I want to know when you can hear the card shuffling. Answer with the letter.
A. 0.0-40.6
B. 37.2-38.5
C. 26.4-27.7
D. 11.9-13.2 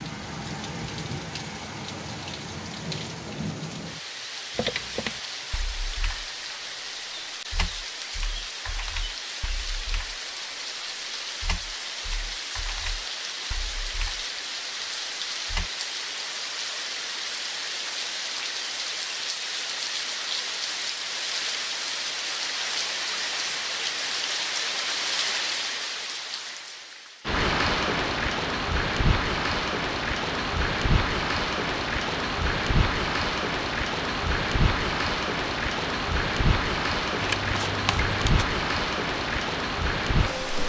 B.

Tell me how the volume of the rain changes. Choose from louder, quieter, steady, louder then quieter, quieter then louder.
louder.